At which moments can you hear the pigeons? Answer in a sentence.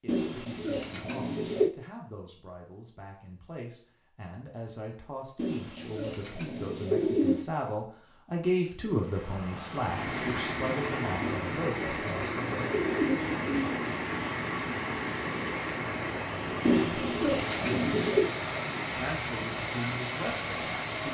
The pigeons can be heard from 0.1 to 1.7 s, from 5.3 to 7.5 s, from 11.2 to 13.9 s and from 16.6 to 18.3 s.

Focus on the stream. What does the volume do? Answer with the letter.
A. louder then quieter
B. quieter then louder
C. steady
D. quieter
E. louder
C.